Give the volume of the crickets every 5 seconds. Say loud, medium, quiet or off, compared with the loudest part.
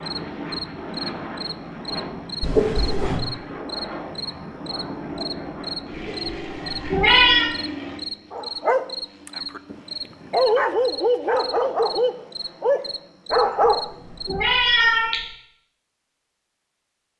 loud, loud, loud, off.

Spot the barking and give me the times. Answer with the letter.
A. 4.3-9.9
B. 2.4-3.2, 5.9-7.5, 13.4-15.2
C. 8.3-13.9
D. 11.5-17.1
C.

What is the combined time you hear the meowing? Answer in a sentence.
The meowing can be heard for 4 seconds in total.